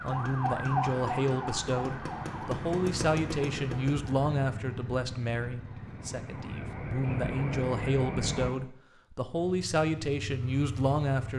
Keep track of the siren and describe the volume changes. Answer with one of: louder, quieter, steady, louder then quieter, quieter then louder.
quieter then louder.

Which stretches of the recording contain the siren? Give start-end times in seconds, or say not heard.
0.0-8.5.